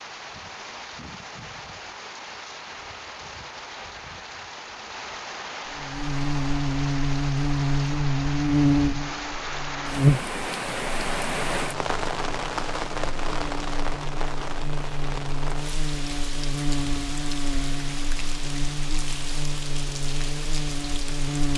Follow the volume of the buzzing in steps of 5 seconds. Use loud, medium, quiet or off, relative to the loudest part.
off, loud, loud, medium, medium.